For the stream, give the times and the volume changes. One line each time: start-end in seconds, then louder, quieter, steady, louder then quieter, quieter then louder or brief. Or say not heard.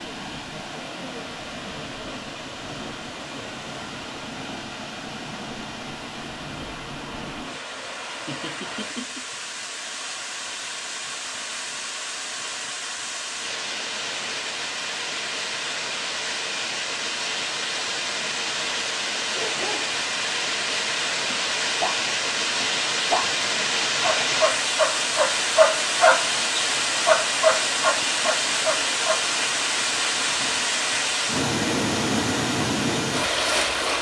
0.0-33.9 louder.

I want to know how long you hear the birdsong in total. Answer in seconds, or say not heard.
not heard.